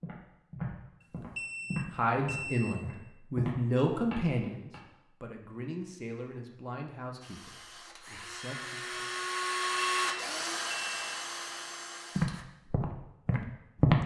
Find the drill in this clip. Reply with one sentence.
The drill can be heard from 7.2 to 12.4 s.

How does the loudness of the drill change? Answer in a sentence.
The loudness of the drill goes up, then down.